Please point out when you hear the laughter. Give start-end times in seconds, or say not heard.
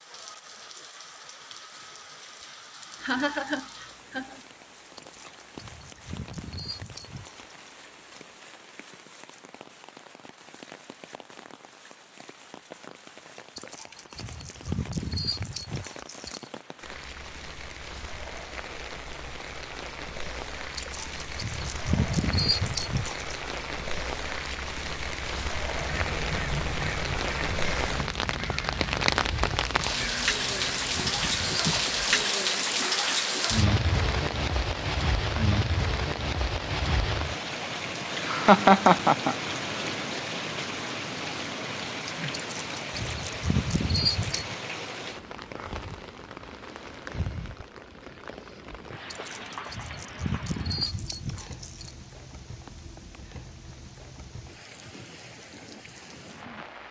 3.0-4.4, 38.1-39.4.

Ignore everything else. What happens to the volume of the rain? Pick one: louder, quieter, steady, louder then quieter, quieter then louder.
louder then quieter.